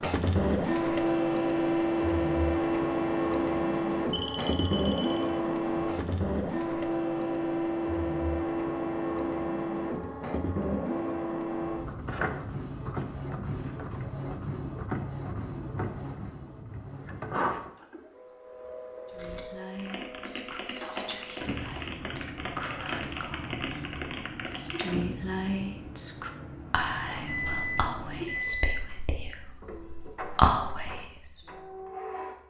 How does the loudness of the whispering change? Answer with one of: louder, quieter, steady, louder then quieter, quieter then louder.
louder.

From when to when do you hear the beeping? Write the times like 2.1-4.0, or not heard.
4.1-5.3, 27.1-29.0.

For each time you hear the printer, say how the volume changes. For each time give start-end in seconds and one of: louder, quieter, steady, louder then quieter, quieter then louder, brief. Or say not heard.
0.0-32.4 quieter.